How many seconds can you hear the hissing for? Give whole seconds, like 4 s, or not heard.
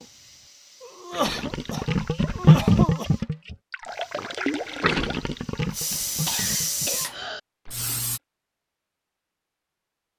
8 s.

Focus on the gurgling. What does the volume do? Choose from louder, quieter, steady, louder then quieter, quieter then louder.
quieter.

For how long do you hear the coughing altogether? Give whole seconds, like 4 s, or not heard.
4 s.